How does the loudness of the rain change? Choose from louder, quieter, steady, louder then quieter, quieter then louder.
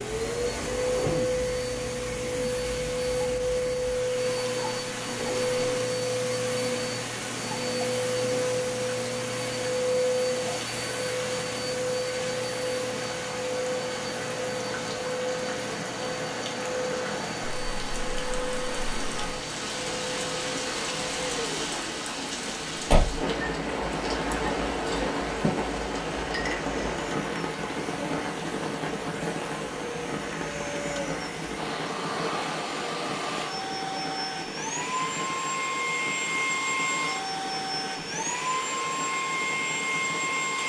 louder then quieter.